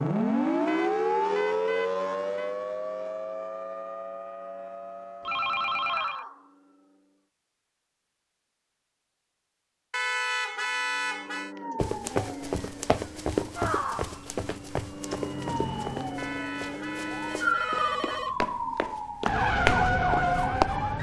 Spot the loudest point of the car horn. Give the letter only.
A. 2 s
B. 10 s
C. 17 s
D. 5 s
B.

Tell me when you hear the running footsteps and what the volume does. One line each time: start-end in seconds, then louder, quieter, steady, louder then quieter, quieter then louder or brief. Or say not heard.
11.8-20.7 quieter then louder.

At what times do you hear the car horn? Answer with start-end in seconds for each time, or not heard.
0.7-2.5, 9.9-11.5, 16.1-18.2.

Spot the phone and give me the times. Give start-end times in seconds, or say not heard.
5.2-6.2, 17.2-18.4.